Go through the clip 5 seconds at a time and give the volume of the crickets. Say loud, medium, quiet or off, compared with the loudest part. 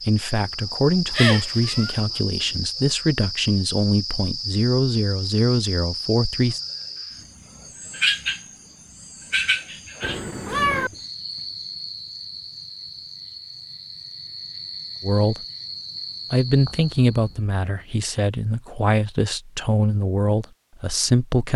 loud, loud, medium, medium, off.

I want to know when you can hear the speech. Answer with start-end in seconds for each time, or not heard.
0.1-6.6, 15.0-15.4, 16.3-21.5.